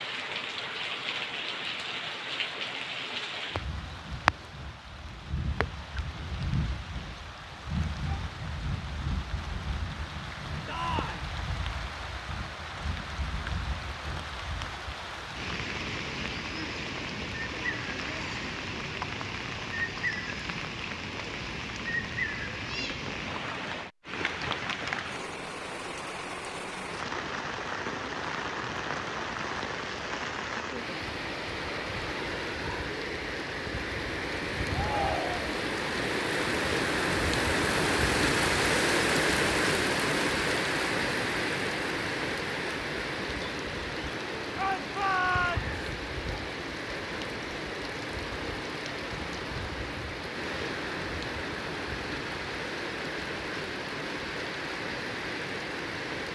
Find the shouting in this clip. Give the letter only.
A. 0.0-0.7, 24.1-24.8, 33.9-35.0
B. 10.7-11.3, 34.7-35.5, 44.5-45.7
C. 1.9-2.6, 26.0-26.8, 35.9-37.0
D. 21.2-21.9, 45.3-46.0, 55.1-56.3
B.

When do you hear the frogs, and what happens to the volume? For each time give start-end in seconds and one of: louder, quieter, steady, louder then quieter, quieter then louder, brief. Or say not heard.
not heard.